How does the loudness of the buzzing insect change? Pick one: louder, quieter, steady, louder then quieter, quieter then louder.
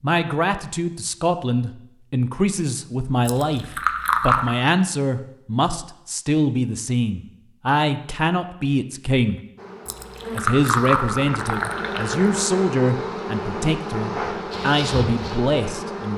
louder.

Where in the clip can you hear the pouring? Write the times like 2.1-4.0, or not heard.
3.2-4.6, 9.8-12.4.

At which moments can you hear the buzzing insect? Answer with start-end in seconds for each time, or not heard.
9.6-16.1.